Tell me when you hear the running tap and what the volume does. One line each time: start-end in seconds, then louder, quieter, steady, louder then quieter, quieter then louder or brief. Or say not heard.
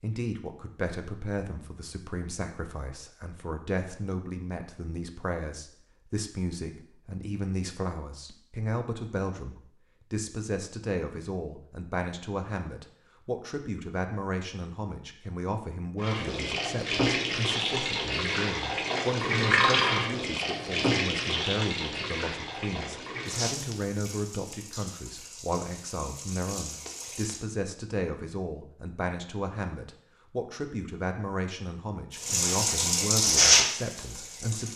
16.0-27.4 quieter
32.1-34.7 brief.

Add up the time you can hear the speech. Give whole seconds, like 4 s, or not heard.
35 s.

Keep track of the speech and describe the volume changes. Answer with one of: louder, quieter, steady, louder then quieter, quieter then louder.
steady.